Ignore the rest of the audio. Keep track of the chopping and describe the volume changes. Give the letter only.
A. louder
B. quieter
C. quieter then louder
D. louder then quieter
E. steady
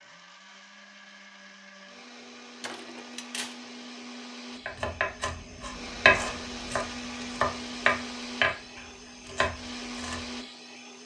D.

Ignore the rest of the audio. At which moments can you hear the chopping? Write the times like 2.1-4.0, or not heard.
4.7-10.2.